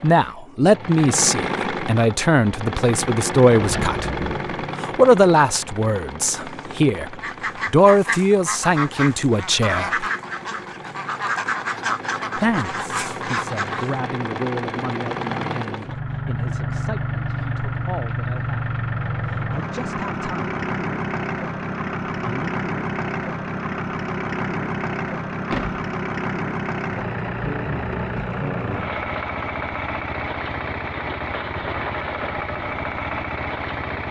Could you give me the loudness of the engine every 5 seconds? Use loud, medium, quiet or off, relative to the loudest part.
loud, medium, medium, loud, loud, loud, loud.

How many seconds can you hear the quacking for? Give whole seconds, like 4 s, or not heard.
7 s.